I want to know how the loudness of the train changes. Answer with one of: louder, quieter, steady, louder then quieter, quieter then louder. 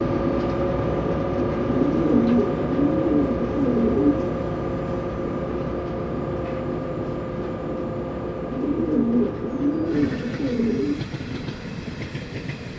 quieter.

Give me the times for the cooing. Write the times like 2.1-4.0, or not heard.
1.8-4.3, 8.5-11.0.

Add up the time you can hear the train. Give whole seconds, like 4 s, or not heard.
13 s.